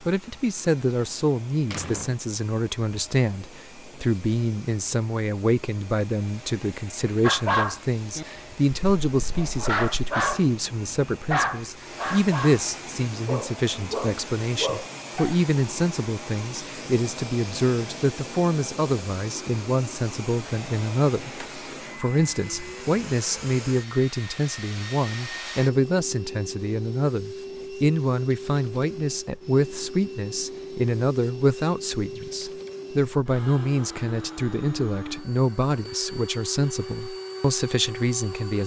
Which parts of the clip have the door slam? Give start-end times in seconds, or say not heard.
1.1-2.2.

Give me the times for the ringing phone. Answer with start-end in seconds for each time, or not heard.
not heard.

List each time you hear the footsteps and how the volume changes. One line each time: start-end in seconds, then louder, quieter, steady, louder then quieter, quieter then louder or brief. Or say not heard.
not heard.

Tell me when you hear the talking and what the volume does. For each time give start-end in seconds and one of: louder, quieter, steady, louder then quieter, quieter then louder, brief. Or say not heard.
0.1-38.6 steady.